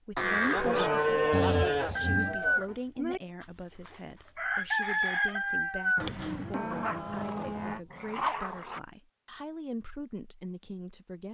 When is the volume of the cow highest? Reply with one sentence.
The loudest moment of the cow is at 1 second.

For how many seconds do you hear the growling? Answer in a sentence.
You can hear the growling for 3 seconds altogether.